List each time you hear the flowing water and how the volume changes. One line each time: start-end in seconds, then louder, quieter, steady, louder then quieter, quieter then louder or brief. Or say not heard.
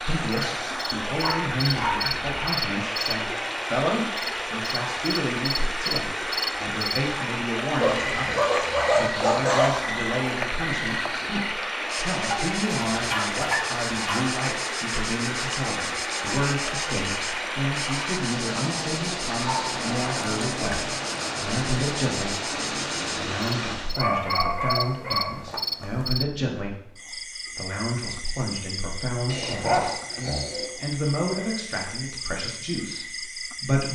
0.0-23.9 steady.